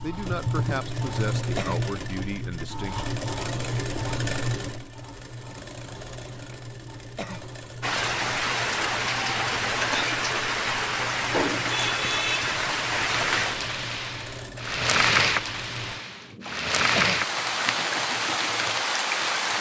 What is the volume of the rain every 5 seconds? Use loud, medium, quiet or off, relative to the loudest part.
off, loud, loud, loud.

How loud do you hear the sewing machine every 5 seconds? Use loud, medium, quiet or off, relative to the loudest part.
loud, medium, medium, medium.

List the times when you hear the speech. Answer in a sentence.
You can hear the speech from 0.0 to 3.1 s.